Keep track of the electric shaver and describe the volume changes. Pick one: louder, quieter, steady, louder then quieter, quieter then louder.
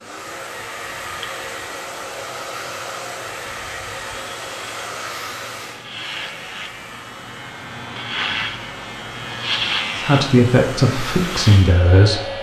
louder.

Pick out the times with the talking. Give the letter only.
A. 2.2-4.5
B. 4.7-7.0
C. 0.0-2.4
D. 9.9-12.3
D.